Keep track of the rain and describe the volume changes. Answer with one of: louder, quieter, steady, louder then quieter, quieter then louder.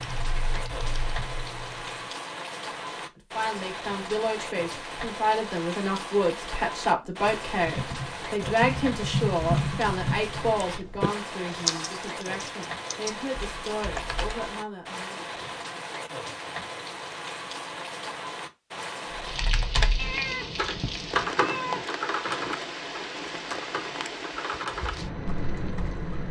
steady.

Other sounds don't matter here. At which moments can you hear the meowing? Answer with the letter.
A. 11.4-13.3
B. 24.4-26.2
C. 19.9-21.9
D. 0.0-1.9
C.